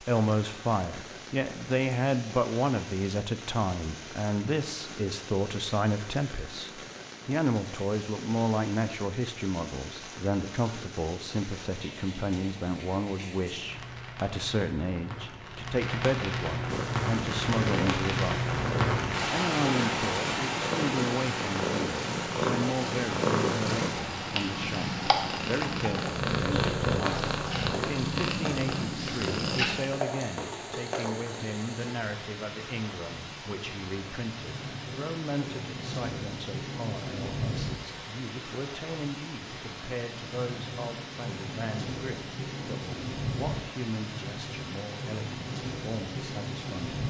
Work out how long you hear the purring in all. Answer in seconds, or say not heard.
13 s.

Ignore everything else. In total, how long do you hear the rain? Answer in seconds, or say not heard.
47 s.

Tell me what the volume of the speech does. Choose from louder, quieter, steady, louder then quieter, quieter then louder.
quieter.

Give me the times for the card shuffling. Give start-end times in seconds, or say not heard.
not heard.